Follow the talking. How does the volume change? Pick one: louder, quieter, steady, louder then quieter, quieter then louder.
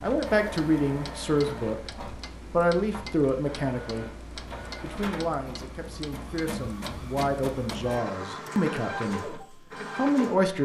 quieter then louder.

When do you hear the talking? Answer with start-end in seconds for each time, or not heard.
0.0-4.0, 4.8-10.6.